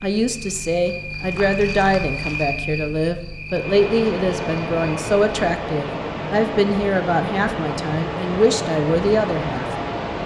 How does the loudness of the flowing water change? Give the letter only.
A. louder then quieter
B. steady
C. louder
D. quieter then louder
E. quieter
B.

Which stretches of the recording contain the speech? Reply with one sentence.
The speech can be heard from 0.0 to 9.7 s.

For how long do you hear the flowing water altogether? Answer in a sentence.
You can hear the flowing water for 7 seconds altogether.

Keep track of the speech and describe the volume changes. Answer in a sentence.
The loudness of the speech stays about the same.